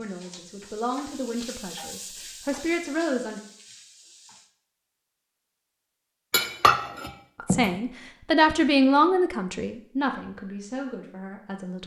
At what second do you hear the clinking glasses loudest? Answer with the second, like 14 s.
7 s.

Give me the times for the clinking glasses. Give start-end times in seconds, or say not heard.
6.3-7.8.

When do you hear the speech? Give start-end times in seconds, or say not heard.
0.0-3.4, 7.3-11.8.